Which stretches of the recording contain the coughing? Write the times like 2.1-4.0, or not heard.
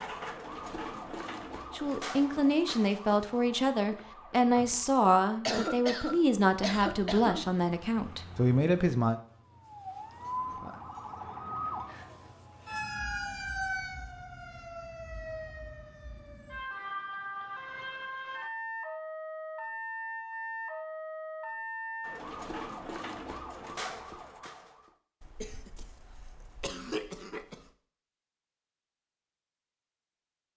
5.5-7.5, 25.2-27.6.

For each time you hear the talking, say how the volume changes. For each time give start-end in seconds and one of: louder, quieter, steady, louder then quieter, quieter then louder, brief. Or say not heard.
1.7-9.2 steady.